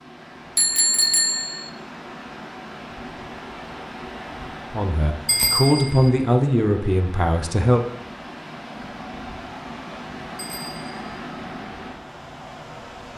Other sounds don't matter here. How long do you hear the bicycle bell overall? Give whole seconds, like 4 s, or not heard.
3 s.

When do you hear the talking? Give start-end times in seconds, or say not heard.
4.7-7.8.